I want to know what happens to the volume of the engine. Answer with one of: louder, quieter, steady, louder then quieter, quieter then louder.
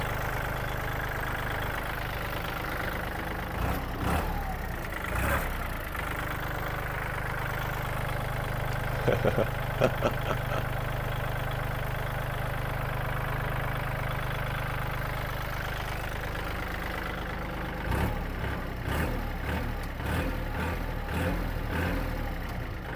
steady.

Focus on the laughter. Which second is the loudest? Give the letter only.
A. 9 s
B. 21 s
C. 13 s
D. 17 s
A.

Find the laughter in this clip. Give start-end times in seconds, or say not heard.
8.7-10.7.